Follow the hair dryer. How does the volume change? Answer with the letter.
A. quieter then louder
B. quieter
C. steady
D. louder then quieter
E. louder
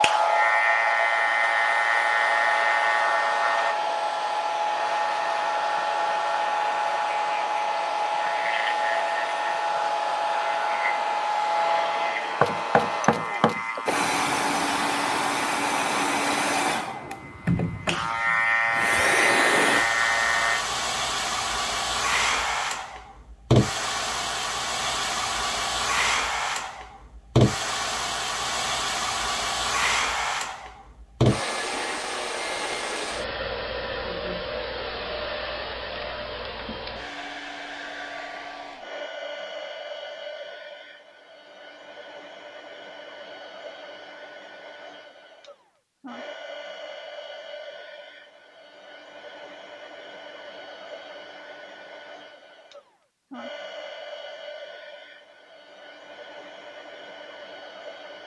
B.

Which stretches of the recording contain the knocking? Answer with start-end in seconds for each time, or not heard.
12.4-13.6.